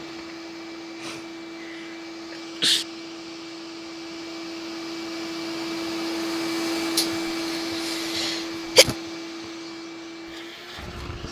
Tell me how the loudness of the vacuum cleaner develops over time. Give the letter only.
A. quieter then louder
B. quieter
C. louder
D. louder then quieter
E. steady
D.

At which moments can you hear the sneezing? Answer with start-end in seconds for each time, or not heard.
1.0-2.9, 7.0-8.9.